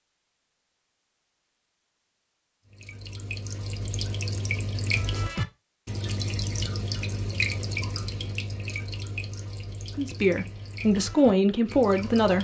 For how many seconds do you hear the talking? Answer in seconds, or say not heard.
2 s.